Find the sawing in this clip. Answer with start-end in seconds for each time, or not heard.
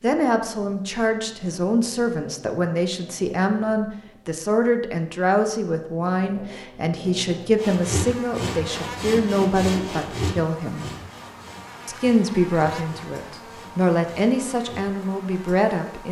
7.5-14.8.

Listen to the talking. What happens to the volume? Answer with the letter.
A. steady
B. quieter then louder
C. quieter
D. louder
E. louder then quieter
A.